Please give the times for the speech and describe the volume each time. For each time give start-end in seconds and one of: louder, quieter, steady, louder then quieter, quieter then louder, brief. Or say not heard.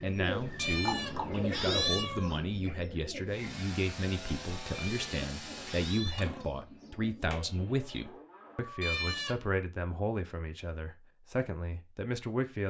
0.0-12.6 steady.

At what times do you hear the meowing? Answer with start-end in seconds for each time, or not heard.
0.6-2.4, 4.7-6.9, 8.8-9.4.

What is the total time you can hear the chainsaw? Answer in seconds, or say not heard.
3 s.